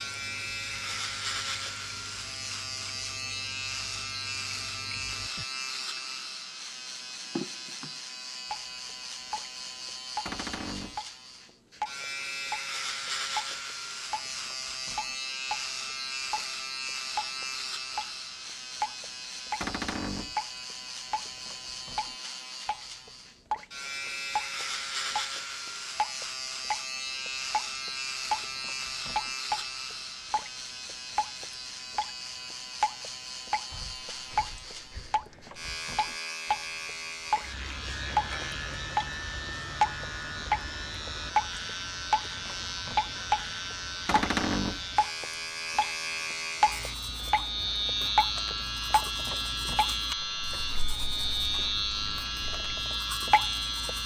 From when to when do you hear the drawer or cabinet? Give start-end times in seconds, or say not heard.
10.2-11.0, 19.6-20.4, 44.0-44.9.